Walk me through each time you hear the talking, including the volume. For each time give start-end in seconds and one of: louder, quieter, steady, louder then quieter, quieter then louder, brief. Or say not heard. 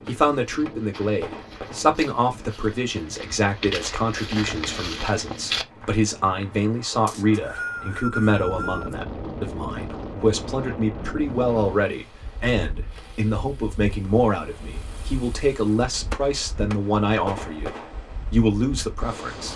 0.1-19.5 steady.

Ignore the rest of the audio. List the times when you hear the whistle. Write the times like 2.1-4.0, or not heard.
7.0-8.9.